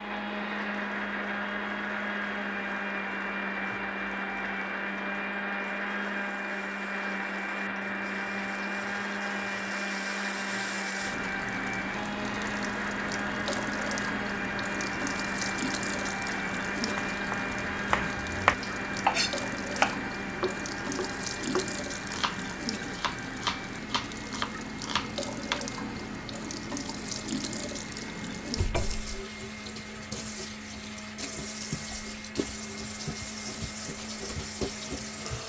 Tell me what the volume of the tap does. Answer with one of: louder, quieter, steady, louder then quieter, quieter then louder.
louder.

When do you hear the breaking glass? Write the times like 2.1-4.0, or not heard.
not heard.